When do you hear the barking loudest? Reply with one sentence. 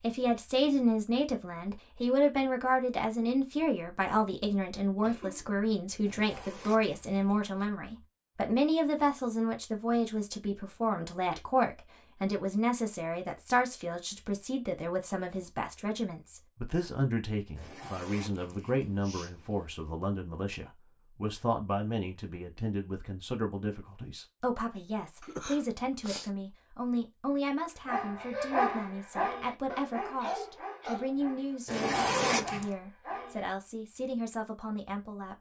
The volume of the barking peaks at 29 seconds.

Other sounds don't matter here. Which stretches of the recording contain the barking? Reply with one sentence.
The barking can be heard from 27.9 to 33.5 s.